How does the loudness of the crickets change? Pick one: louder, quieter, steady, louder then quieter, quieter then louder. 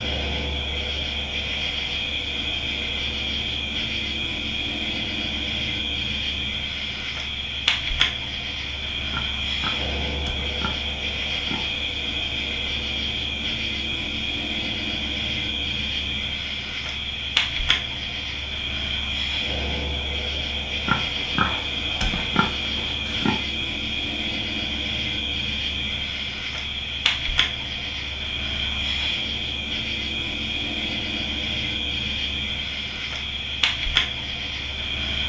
steady.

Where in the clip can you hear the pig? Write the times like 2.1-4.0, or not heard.
9.1-11.8, 20.9-23.4.